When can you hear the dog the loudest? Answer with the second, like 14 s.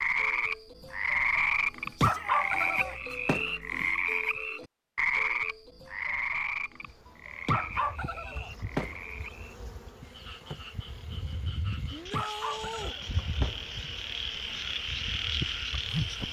2 s.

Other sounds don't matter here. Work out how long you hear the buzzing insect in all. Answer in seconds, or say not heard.
9 s.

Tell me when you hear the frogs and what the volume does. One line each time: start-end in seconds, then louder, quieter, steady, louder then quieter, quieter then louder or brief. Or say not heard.
0.0-16.2 quieter then louder.